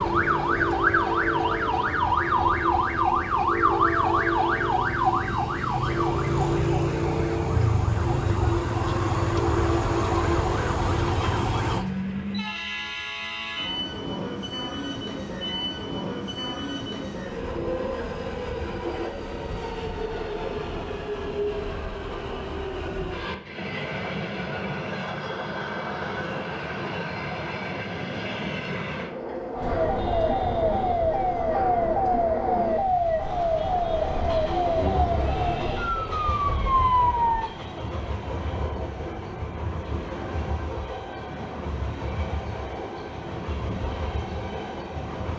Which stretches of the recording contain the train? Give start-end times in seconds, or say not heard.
0.0-45.3.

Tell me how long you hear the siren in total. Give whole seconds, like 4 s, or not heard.
20 s.